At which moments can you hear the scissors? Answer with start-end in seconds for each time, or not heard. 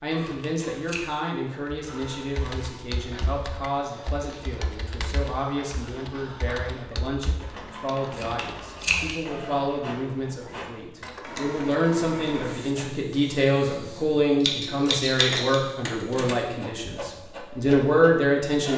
0.1-1.1, 8.1-9.2, 14.4-15.6.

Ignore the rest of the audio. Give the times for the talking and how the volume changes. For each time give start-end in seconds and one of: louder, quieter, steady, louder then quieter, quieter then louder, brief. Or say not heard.
0.0-18.7 louder.